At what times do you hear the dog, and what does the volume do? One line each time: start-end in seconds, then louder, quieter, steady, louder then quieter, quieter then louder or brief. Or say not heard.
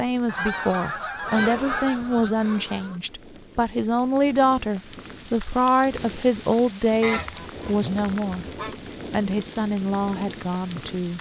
not heard.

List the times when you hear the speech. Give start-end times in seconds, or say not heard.
0.0-8.4, 9.1-11.1.